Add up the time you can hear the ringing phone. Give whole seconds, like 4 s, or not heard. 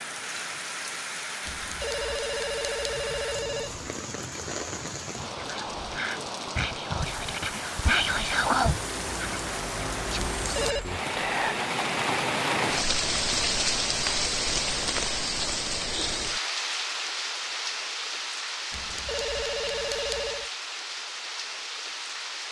5 s.